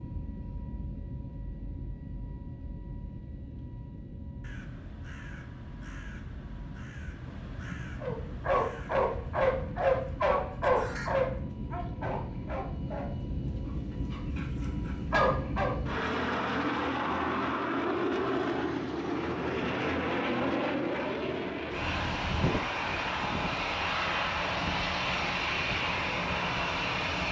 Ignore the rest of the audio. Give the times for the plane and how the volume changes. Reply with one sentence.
You can hear the plane from 0.0 to 27.2 s, getting louder.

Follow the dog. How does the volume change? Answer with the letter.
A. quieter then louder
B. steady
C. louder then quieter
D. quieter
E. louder
A.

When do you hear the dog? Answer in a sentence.
The dog can be heard from 8.0 to 15.8 s.